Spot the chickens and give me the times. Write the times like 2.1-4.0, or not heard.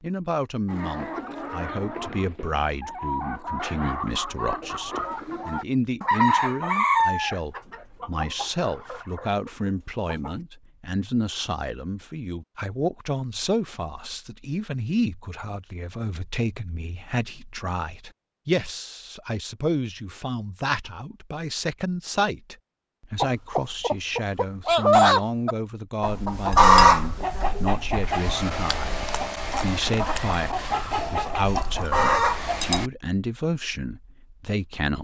0.7-10.3, 23.2-32.9.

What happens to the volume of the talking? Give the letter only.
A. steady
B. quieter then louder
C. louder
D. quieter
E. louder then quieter
A.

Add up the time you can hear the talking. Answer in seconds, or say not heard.
35 s.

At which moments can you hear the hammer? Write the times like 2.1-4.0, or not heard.
not heard.